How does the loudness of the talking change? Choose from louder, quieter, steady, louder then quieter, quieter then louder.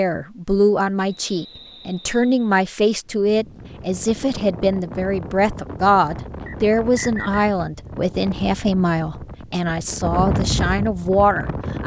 steady.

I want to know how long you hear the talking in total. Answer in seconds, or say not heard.
12 s.